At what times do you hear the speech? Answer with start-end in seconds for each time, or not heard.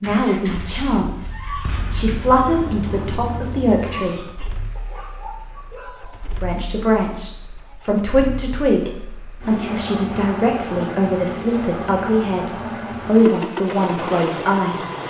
0.0-4.6, 6.4-15.0.